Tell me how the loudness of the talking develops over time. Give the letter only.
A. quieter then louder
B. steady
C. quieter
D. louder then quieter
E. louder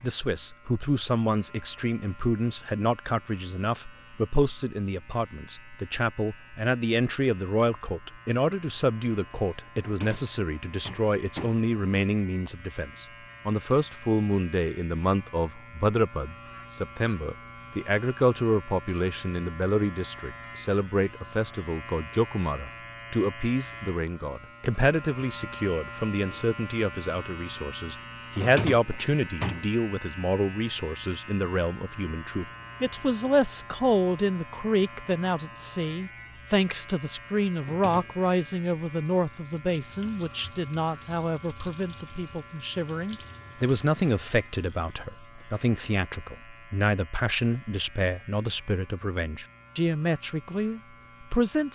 B.